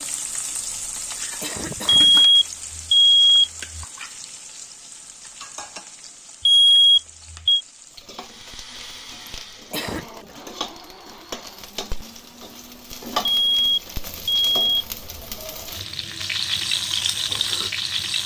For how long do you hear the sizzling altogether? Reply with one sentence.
You can hear the sizzling for 18 seconds altogether.